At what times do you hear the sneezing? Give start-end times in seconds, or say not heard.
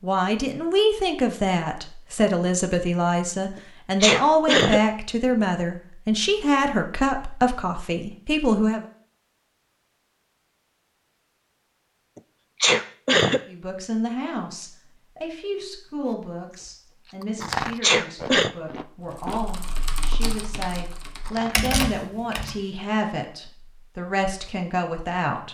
3.5-4.8, 12.2-13.4, 17.8-18.6.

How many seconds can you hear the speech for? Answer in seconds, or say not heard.
21 s.